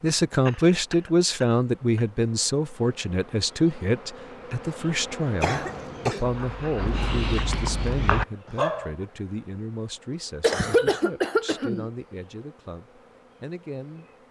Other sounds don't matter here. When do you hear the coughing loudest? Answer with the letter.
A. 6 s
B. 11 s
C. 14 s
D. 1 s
B.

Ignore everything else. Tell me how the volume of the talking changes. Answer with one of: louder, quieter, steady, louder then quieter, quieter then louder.
quieter.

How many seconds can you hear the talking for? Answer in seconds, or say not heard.
14 s.